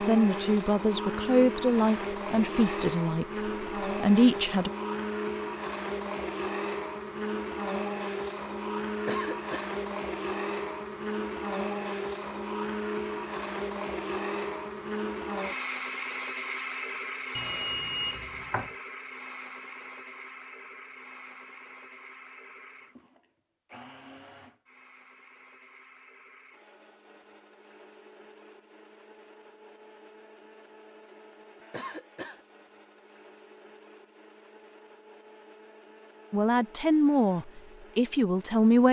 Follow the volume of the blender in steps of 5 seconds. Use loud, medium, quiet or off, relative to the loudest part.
loud, loud, loud, loud, quiet, quiet, quiet, quiet.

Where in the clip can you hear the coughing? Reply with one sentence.
You can hear the coughing from 9.1 to 9.7 s and from 31.7 to 32.5 s.